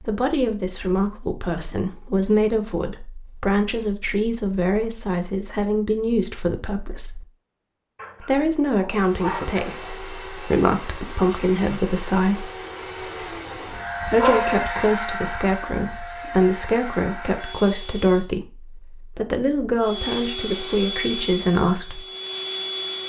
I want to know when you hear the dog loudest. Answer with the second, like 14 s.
14 s.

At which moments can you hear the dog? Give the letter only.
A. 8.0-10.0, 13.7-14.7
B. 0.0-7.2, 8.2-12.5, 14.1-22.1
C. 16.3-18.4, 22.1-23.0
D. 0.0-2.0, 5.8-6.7
A.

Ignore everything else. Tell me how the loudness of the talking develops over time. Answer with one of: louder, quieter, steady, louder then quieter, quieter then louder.
steady.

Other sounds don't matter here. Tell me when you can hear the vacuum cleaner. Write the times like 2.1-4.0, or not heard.
9.0-18.3, 19.8-23.0.